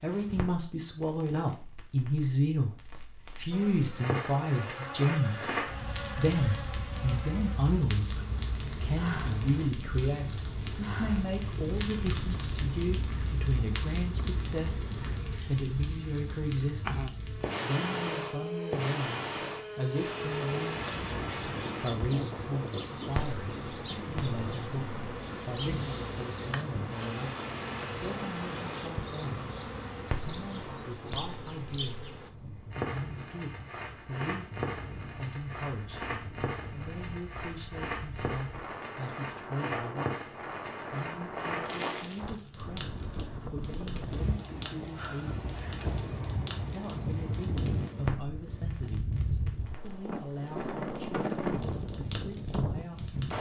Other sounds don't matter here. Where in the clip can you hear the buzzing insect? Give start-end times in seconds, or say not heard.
3.5-32.3.